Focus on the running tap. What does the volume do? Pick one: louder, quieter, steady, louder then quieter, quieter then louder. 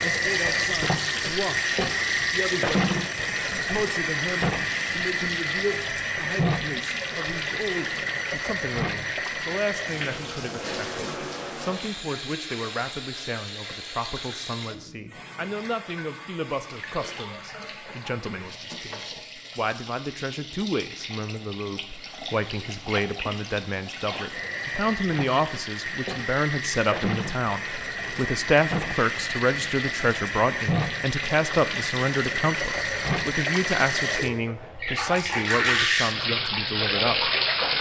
quieter then louder.